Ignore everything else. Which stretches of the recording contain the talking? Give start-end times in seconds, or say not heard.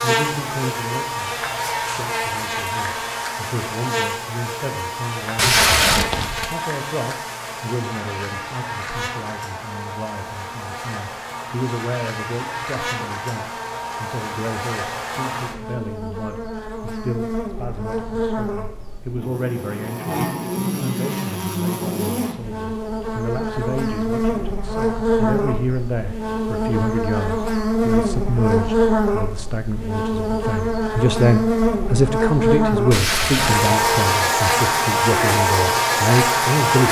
0.0-36.8.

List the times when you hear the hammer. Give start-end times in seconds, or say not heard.
not heard.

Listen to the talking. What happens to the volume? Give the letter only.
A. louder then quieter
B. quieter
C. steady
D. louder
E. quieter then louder
D.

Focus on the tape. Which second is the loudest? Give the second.
6 s.